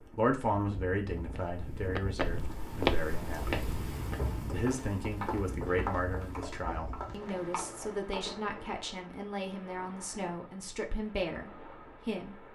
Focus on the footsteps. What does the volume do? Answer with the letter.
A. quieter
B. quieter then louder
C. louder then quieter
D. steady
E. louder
A.